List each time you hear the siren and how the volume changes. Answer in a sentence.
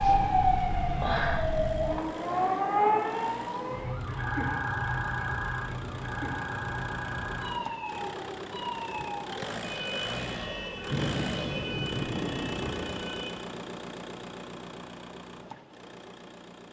The siren can be heard from 0.0 to 13.3 s, getting quieter.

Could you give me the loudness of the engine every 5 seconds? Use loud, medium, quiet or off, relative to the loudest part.
medium, loud, loud, medium.